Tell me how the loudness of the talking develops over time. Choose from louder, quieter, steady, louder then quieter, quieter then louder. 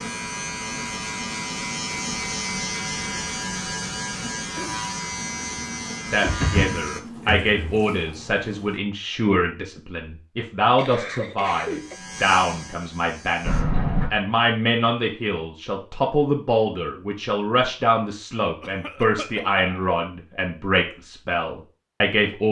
steady.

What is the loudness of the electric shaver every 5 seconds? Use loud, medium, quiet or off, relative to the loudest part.
loud, loud, medium, off, off.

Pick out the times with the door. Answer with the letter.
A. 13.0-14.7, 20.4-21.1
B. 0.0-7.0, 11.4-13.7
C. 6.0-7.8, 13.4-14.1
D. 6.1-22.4
C.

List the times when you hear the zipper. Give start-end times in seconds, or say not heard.
not heard.